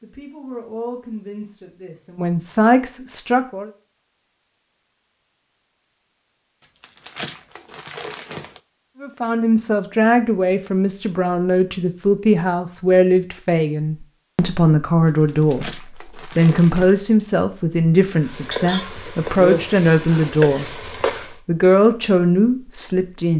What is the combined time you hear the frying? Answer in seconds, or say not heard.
3 s.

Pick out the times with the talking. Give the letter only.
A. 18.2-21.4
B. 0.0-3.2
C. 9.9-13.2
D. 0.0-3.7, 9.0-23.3
D.